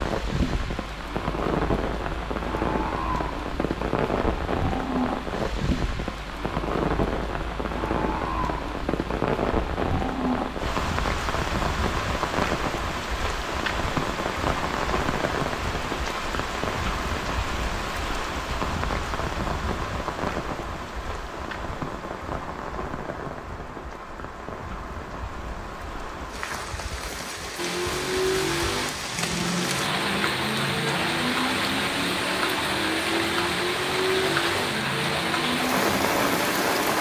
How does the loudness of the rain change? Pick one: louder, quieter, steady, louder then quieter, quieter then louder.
quieter then louder.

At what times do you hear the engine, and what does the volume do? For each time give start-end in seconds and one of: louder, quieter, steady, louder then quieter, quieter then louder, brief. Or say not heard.
27.6-36.9 steady.